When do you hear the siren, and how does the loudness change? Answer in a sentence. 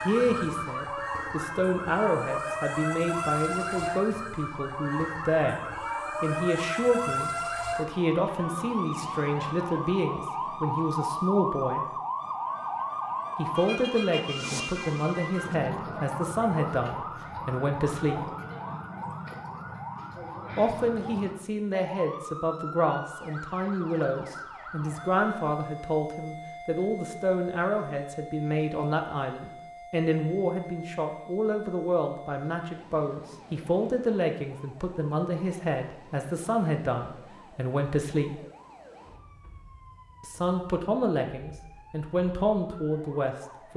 You can hear the siren from 0.0 to 43.7 s, getting quieter.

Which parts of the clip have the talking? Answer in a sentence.
The talking can be heard from 0.0 to 11.8 s, from 13.3 to 18.2 s, from 20.6 to 38.4 s and from 40.2 to 43.7 s.